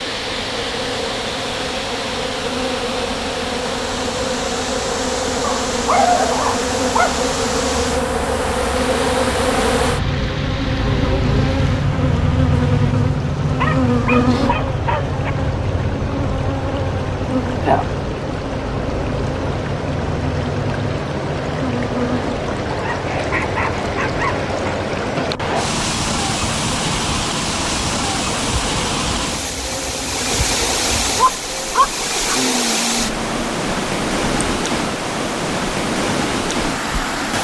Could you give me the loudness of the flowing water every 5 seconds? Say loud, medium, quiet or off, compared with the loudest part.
medium, medium, medium, medium, loud, loud, loud, loud.